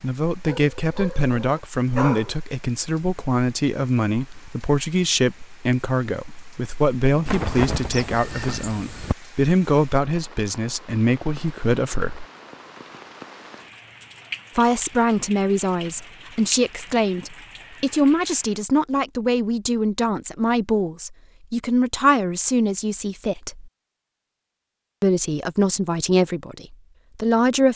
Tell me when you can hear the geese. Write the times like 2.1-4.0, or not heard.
7.2-9.2.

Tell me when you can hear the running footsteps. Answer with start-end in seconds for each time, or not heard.
not heard.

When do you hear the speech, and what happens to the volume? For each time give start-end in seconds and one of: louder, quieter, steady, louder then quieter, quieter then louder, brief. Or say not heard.
0.0-12.2 steady
14.6-23.7 steady
25.0-27.7 brief.